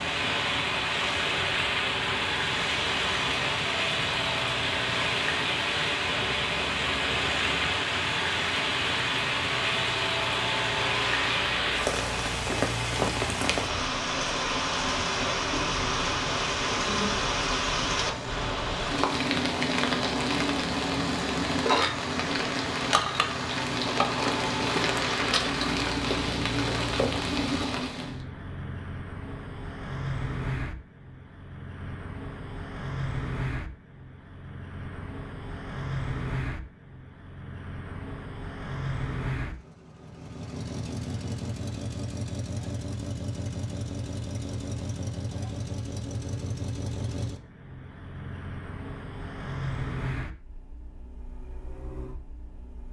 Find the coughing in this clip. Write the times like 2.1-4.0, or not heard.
not heard.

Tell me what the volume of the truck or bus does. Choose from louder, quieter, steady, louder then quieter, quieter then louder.
steady.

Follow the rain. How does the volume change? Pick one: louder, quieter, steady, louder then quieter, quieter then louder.
steady.